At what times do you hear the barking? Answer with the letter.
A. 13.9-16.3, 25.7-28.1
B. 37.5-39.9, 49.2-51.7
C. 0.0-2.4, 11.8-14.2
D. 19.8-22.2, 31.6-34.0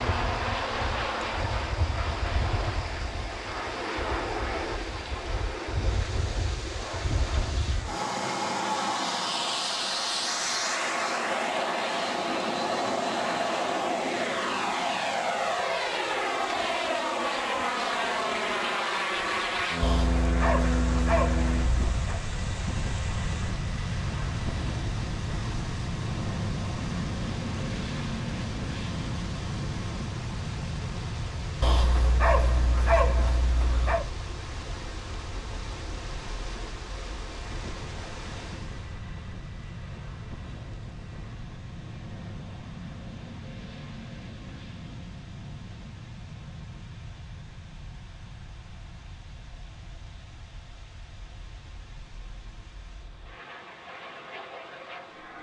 D.